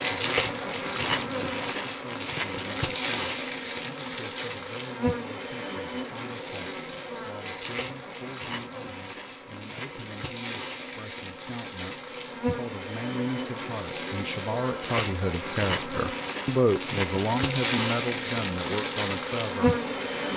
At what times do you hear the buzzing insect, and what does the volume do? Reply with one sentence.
You can hear the buzzing insect from 0.0 to 20.3 s, getting quieter then louder.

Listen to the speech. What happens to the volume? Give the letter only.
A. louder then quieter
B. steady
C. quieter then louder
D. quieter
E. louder
E.